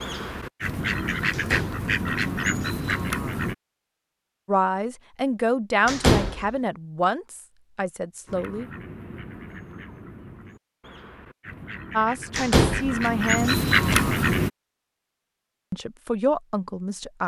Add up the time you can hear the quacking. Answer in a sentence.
You can hear the quacking for 10 seconds altogether.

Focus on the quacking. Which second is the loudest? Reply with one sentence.
The loudest moment of the quacking is at 14 seconds.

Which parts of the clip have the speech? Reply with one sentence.
You can hear the speech from 4.5 to 8.7 s, from 11.9 to 13.6 s and from 15.7 to 17.2 s.